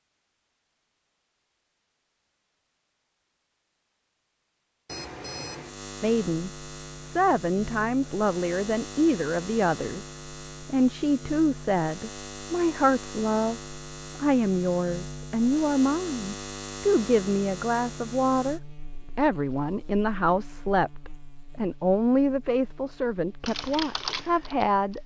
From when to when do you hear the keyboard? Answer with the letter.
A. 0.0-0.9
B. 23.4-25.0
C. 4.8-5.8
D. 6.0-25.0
B.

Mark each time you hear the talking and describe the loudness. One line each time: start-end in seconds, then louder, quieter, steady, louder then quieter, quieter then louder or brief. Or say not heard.
6.0-25.0 steady.